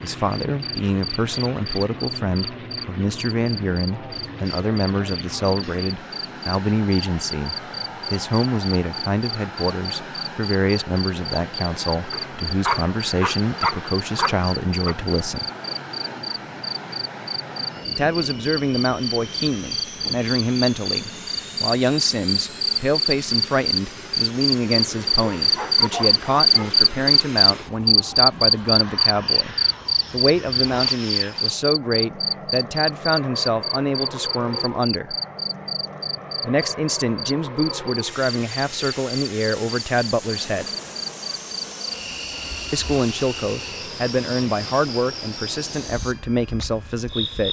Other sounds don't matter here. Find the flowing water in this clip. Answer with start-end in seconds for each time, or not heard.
not heard.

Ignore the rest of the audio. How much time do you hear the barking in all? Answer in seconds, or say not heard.
4 s.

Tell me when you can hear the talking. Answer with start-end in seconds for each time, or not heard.
0.0-15.4, 17.9-35.1, 36.4-40.6, 42.7-47.4.